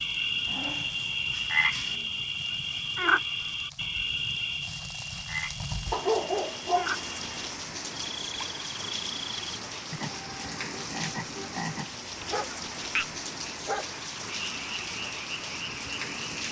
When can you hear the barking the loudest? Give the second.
6 s.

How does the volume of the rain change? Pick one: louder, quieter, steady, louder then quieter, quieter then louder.
louder.